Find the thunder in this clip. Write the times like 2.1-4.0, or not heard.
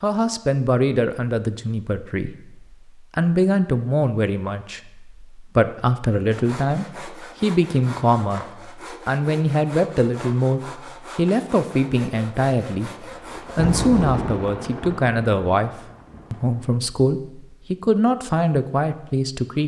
13.1-16.7.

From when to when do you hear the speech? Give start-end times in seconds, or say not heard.
0.0-19.6.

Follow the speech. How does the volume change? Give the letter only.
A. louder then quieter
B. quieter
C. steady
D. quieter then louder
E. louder
C.